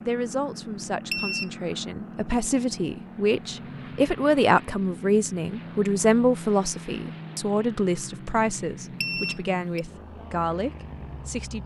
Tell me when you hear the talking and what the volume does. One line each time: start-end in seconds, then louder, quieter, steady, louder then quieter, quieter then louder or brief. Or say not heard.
0.0-11.6 louder then quieter.